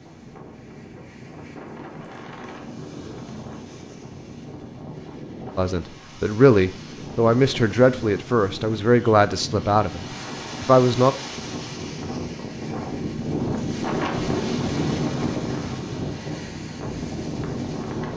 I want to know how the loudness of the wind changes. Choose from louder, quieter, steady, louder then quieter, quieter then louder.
louder.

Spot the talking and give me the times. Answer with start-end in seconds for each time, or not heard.
5.5-11.2.